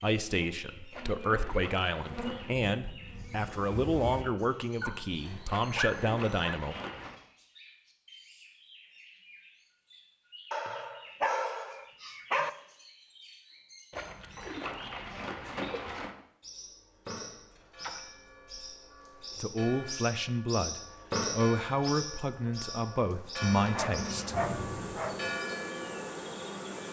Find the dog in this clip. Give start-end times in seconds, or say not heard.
4.8-6.5, 10.5-12.5, 23.7-25.2.